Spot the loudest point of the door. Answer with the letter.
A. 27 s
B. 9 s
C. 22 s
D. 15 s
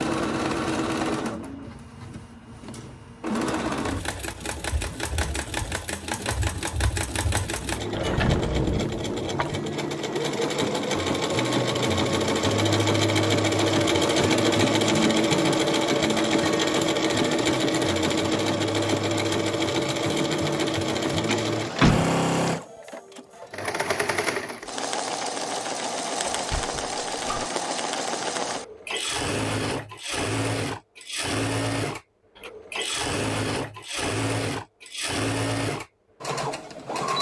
C.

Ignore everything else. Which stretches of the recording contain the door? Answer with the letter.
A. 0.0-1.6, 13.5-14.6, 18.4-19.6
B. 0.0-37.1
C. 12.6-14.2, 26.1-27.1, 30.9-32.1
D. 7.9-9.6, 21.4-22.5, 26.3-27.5
D.